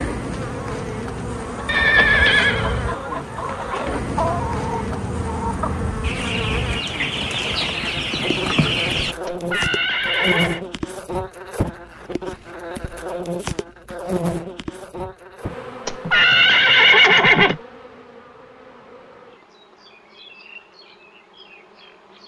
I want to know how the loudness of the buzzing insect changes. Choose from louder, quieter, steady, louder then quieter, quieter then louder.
quieter.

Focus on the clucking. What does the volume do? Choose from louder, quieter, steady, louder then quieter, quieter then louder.
louder.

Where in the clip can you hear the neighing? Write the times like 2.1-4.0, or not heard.
1.6-2.8, 9.2-10.6, 15.8-17.6.